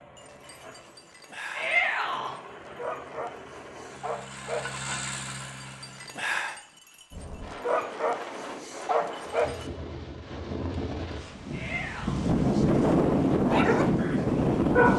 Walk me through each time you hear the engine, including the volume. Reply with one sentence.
You can hear the engine from 0.0 to 6.3 s, getting louder.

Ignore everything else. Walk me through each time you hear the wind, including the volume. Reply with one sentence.
You can hear the wind from 7.1 to 14.9 s, getting louder.